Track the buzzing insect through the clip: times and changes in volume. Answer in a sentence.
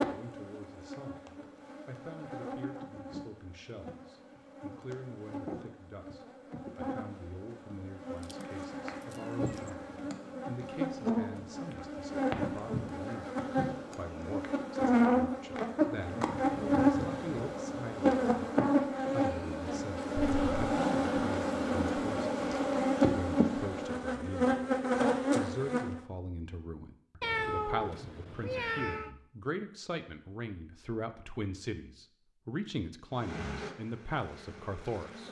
You can hear the buzzing insect from 0.0 to 26.0 s, getting louder; and briefly from 33.1 to 35.2 s.